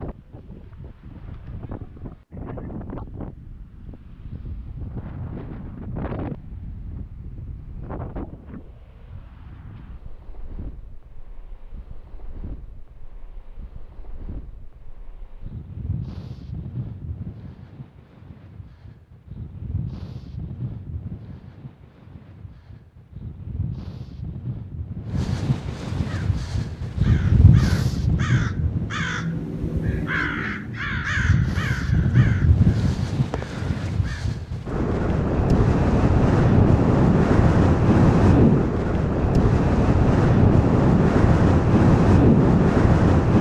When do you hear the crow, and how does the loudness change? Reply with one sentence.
The crow can be heard from 26.1 to 34.2 s, getting louder then quieter.